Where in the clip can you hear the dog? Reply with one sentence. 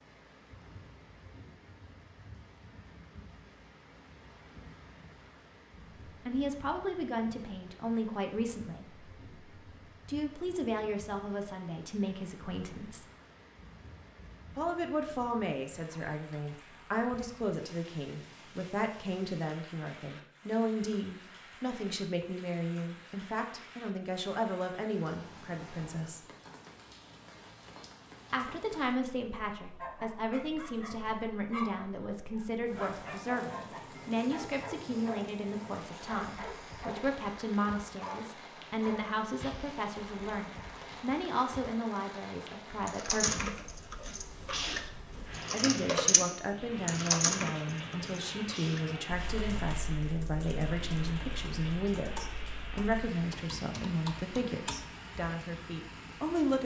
You can hear the dog from 29.8 to 37.1 s and from 38.0 to 39.1 s.